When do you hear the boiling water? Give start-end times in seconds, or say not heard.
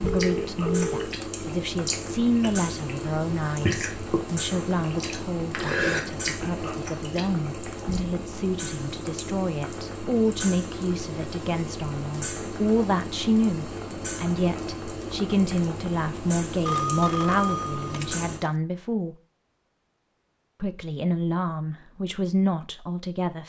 0.0-18.4.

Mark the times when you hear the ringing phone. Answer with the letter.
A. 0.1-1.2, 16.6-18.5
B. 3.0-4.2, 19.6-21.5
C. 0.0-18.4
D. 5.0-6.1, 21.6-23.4
A.